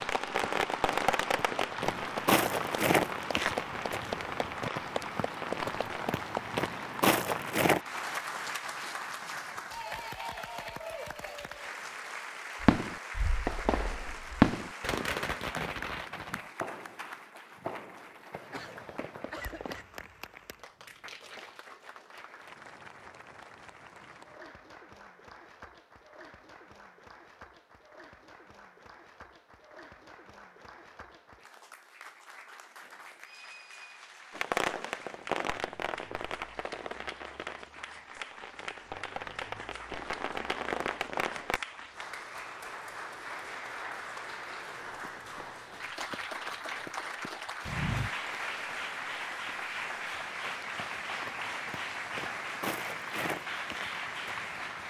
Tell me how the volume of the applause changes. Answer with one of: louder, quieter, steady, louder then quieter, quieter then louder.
quieter then louder.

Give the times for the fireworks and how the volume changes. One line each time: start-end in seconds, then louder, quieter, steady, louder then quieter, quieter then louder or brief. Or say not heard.
0.0-6.2 quieter
12.6-19.9 louder then quieter
34.3-41.6 quieter then louder.